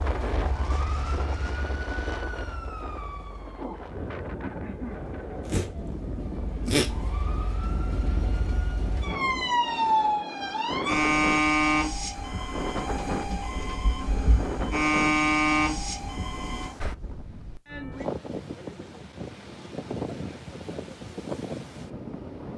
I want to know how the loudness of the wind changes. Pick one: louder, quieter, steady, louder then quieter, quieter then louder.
steady.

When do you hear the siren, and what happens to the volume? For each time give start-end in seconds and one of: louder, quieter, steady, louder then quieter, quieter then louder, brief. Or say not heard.
0.0-16.8 louder.